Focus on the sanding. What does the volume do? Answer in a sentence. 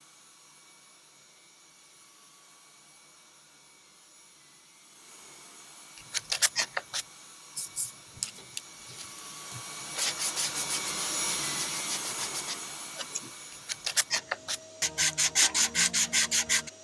The loudness of the sanding goes down, then up.